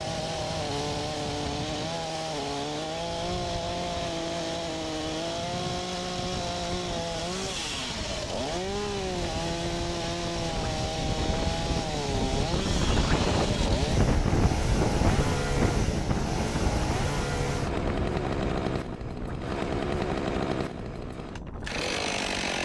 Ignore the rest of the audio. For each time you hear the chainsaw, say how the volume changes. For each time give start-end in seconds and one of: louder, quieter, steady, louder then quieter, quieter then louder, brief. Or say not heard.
0.0-22.6 steady.